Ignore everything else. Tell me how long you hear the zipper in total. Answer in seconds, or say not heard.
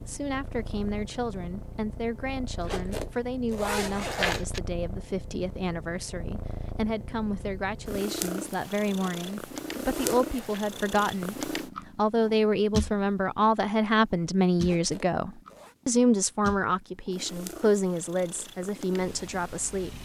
5 s.